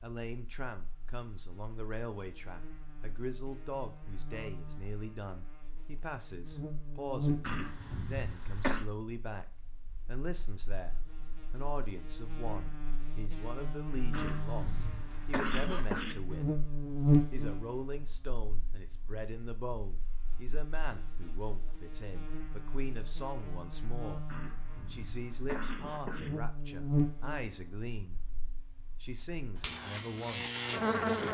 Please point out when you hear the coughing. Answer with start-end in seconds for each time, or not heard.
7.4-8.8, 14.1-16.1, 24.2-26.3.